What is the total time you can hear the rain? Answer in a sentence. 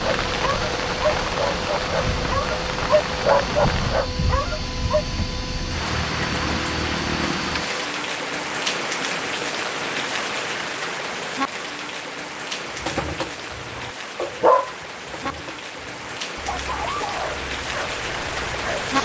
The rain can be heard for 19 seconds in total.